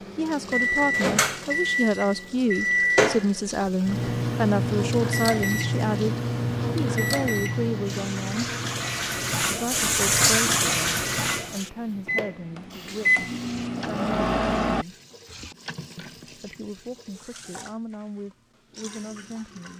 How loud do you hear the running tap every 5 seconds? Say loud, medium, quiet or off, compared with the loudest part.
quiet, loud, loud, quiet.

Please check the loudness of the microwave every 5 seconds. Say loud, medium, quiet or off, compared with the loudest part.
loud, loud, loud, off.